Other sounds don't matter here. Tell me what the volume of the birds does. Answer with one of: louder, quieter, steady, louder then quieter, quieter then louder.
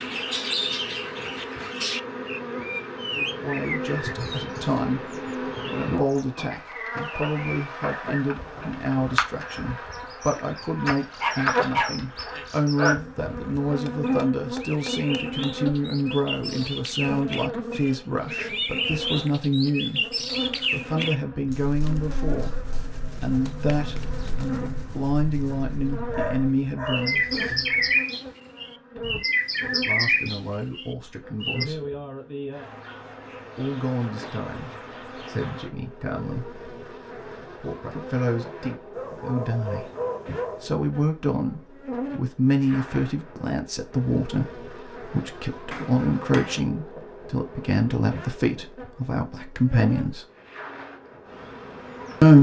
quieter then louder.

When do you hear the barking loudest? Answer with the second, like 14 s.
12 s.